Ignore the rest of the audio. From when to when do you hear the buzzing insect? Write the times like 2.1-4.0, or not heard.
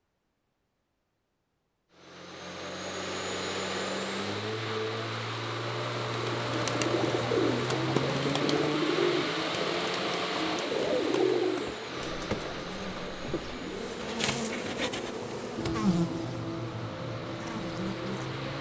11.7-18.5.